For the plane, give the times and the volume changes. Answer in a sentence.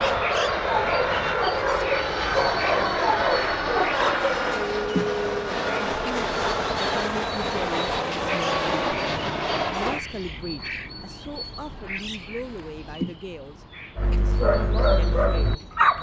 You can hear the plane from 0.0 to 10.0 s, at a steady volume.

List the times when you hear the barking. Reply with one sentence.
You can hear the barking from 0.0 to 4.3 s and from 13.9 to 15.9 s.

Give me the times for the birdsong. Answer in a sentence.
You can hear the birdsong from 0.0 to 15.9 s.